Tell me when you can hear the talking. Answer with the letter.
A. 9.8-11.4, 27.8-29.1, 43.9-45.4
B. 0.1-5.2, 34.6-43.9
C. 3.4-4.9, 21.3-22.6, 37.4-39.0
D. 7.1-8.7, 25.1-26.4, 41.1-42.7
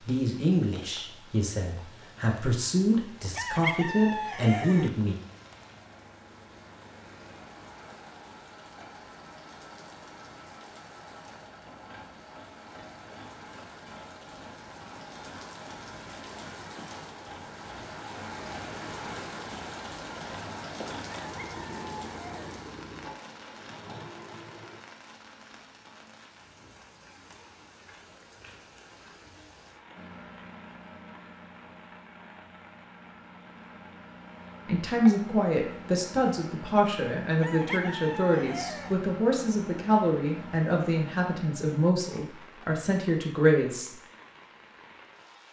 B.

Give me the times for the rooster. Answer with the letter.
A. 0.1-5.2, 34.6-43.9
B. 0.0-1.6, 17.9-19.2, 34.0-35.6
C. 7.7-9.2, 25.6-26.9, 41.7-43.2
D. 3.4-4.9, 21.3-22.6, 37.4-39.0
D.